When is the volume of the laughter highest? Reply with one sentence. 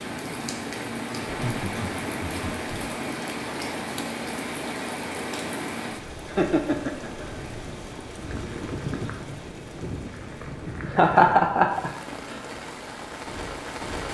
The loudest moment of the laughter is at 11 seconds.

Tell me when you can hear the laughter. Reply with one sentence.
You can hear the laughter from 1.2 to 2.9 s, from 6.2 to 7.2 s and from 10.9 to 11.9 s.